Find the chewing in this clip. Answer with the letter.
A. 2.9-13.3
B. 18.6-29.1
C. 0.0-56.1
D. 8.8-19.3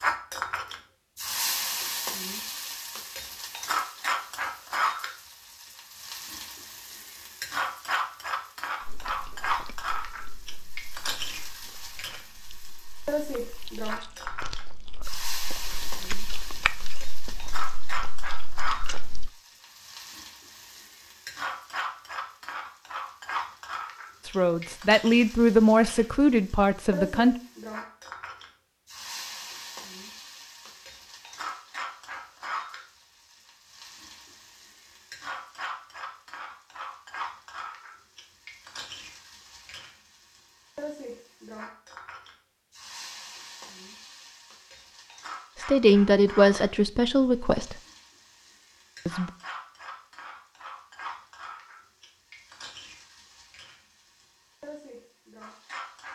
D.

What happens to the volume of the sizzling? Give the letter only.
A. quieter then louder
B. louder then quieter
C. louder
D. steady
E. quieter
E.